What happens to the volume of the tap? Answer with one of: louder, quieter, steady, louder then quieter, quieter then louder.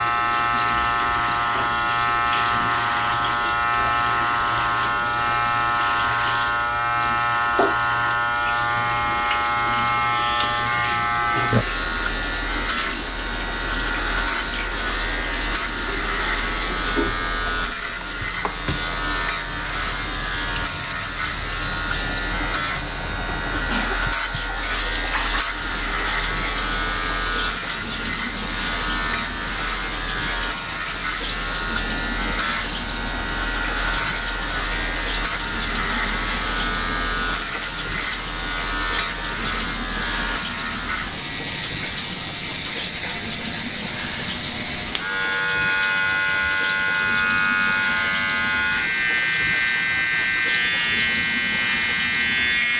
steady.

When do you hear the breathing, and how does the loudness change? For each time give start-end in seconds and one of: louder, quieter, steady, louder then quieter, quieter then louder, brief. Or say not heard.
not heard.